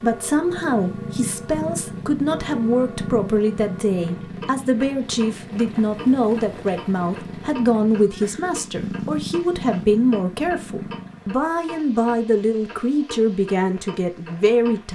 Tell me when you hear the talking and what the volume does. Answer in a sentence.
The talking can be heard from 0.0 to 14.9 s, at a steady volume.